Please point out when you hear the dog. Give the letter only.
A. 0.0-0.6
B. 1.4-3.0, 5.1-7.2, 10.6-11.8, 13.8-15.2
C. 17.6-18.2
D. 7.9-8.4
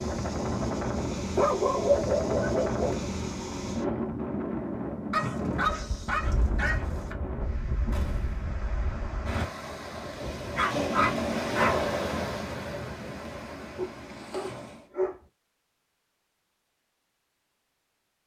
B.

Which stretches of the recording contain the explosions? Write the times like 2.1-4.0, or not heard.
7.9-8.4.